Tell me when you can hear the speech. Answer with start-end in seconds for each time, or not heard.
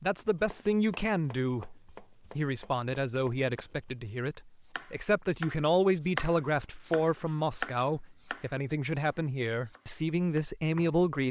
0.0-1.8, 2.4-11.2.